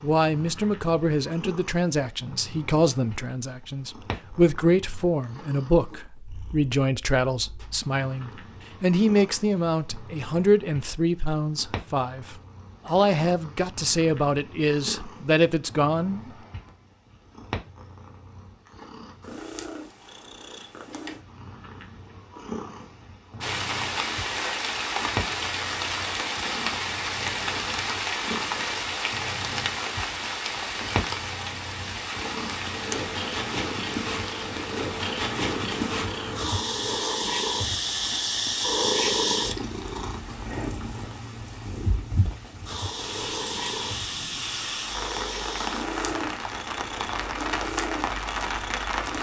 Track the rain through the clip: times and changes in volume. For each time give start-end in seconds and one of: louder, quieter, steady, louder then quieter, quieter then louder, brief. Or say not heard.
23.4-49.1 quieter then louder.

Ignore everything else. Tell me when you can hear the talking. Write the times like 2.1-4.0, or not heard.
0.0-16.3.